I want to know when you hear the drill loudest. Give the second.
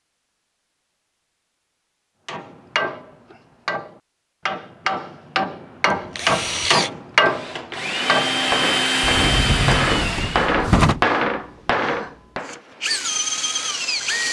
9 s.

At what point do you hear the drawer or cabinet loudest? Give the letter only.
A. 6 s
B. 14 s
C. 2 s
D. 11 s
D.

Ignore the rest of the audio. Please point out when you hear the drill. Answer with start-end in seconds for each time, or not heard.
5.9-10.7, 12.4-14.2.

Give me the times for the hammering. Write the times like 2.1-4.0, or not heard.
2.2-12.6.